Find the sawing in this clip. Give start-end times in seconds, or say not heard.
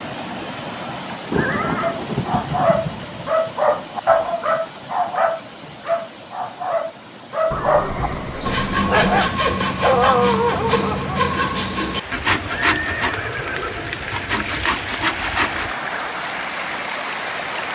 8.4-15.8.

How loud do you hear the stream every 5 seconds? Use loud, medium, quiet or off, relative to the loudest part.
medium, quiet, medium, loud.